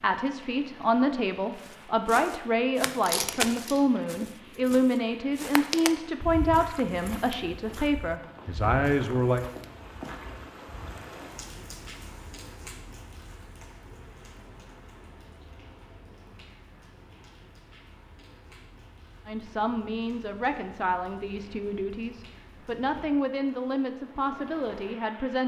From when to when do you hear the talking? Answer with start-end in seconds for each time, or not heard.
0.0-9.4, 19.2-25.4.